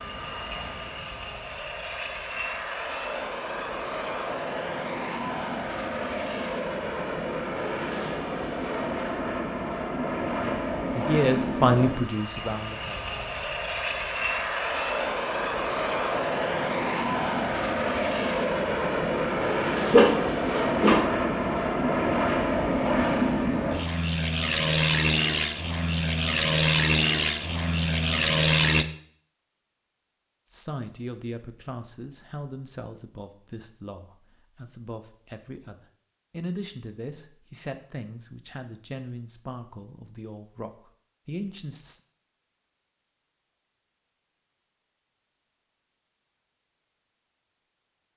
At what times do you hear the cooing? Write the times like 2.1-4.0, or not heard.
not heard.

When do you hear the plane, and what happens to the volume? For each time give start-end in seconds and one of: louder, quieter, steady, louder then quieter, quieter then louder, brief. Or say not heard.
0.0-28.9 louder.